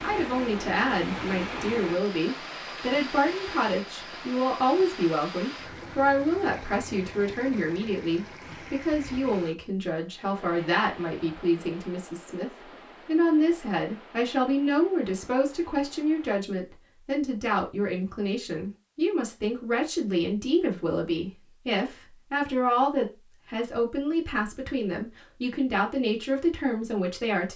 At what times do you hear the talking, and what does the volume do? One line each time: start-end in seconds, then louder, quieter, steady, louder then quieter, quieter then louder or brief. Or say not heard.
0.0-27.5 steady.